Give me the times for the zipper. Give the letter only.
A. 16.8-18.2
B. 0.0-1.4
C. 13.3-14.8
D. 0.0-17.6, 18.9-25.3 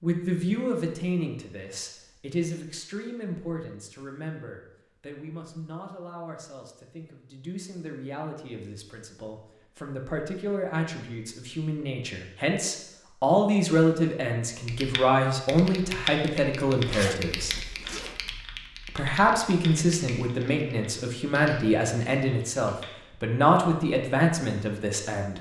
A.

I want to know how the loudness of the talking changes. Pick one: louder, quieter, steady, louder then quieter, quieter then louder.
quieter then louder.